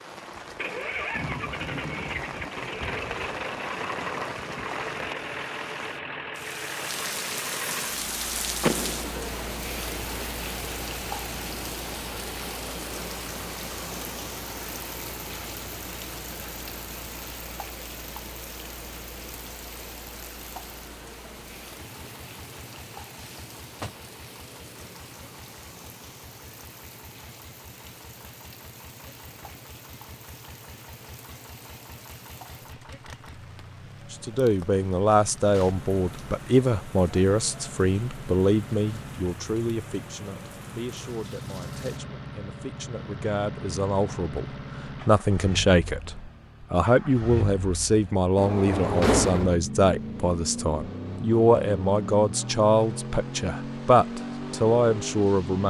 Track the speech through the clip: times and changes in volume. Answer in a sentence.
The speech can be heard from 34.1 to 55.6 s, getting quieter then louder.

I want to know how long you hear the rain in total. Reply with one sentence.
The rain can be heard for 42 seconds in total.